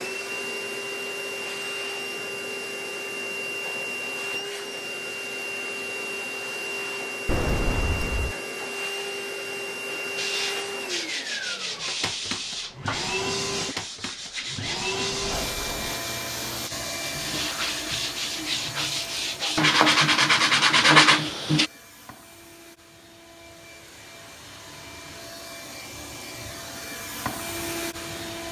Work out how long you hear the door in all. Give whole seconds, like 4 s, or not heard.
2 s.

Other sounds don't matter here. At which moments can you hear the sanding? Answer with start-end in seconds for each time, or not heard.
10.2-21.7.